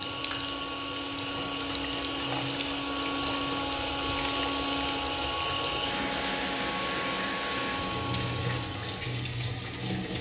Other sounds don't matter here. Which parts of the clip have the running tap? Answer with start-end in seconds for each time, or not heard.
0.0-10.1.